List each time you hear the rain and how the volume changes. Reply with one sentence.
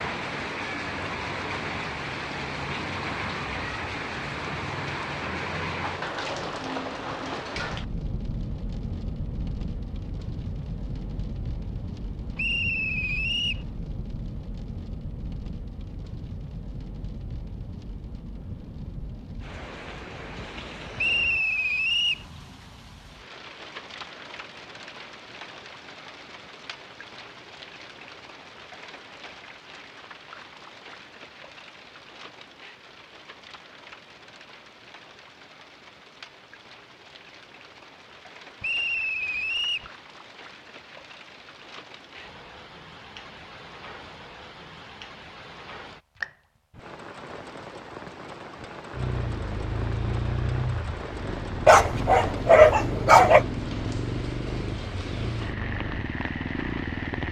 The rain can be heard from 0.0 to 57.2 s, getting quieter then louder.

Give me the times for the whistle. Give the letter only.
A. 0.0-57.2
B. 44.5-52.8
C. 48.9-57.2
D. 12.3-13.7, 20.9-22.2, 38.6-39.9
D.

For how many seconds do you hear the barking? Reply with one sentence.
You can hear the barking for 2 seconds altogether.